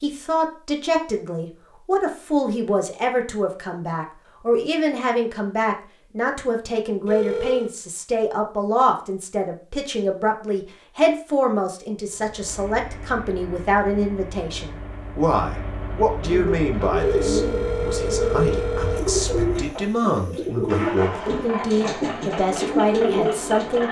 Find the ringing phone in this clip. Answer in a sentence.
You can hear the ringing phone from 7.0 to 7.8 s and from 16.9 to 19.1 s.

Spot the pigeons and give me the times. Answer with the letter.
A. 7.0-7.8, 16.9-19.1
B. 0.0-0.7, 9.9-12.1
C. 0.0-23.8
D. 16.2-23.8
D.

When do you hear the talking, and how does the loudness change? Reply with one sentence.
You can hear the talking from 0.0 to 23.8 s, at a steady volume.